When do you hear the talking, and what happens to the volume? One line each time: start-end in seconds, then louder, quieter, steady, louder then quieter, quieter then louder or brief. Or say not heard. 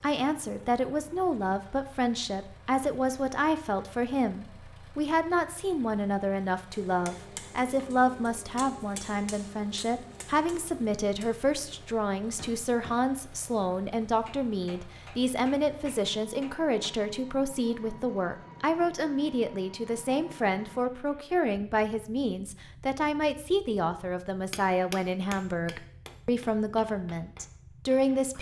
0.0-28.3 steady.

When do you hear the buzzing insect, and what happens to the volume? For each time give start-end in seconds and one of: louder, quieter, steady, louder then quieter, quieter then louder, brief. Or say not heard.
not heard.